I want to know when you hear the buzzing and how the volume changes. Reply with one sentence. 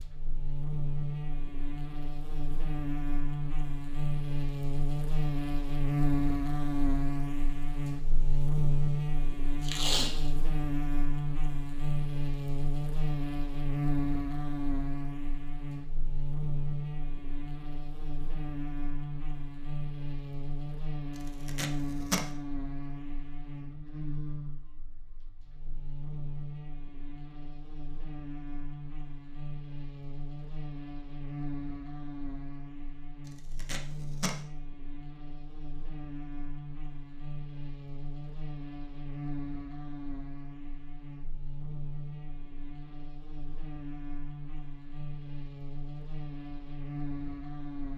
You can hear the buzzing from 0.0 to 47.9 s, getting quieter.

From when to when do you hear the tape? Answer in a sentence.
You can hear the tape from 9.6 to 10.3 s, from 21.1 to 22.2 s and from 33.2 to 34.4 s.